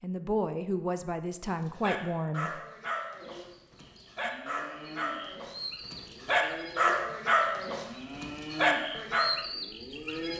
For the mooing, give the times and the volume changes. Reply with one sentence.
The mooing can be heard from 3.2 to 10.3 s, getting louder.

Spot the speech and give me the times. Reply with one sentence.
You can hear the speech from 0.0 to 2.6 s.